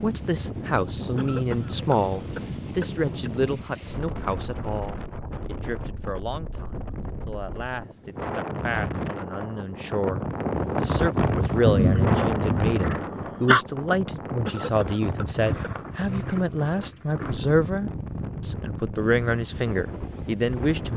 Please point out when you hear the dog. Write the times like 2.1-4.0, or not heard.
11.7-13.7.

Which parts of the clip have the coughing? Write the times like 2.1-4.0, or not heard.
1.1-3.3, 14.4-15.7.